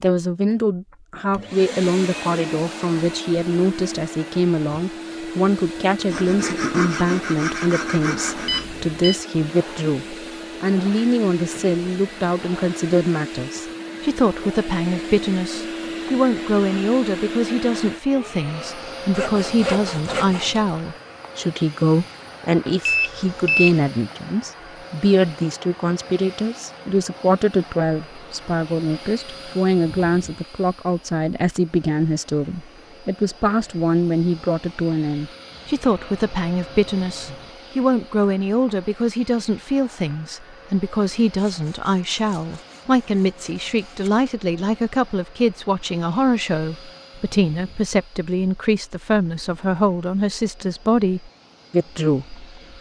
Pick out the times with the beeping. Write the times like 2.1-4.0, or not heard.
8.4-9.2, 22.9-23.8, 35.5-37.5.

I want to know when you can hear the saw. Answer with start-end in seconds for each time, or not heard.
6.0-8.7, 19.1-20.7, 41.5-44.4.